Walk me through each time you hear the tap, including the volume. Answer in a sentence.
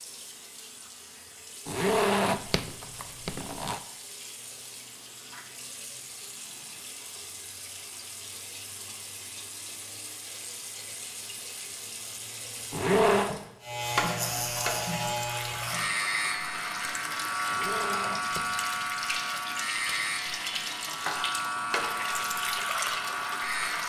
You can hear the tap from 0.0 to 23.8 s, getting louder.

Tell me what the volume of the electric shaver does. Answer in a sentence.
The loudness of the electric shaver stays about the same.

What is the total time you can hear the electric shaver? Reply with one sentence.
The electric shaver can be heard for 10 seconds in total.